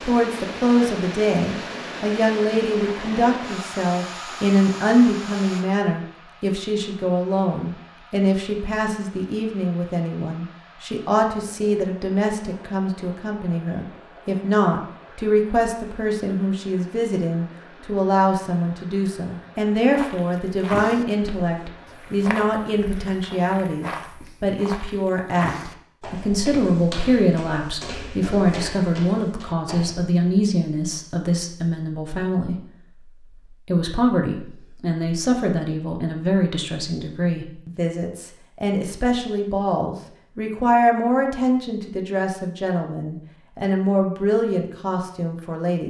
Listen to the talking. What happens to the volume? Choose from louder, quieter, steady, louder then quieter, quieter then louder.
steady.